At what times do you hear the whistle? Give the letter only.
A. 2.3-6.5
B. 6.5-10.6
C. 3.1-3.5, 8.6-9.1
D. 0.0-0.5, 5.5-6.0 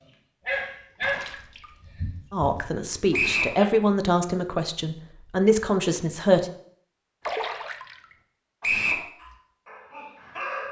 C.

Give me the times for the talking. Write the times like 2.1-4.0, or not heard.
2.3-6.5.